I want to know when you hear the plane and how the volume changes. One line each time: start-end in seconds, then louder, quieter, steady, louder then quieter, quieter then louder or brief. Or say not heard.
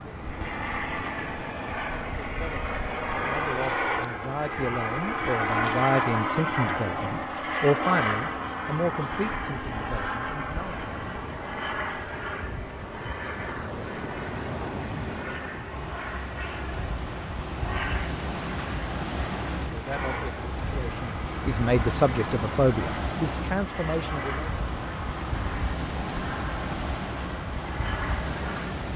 0.0-28.8 quieter.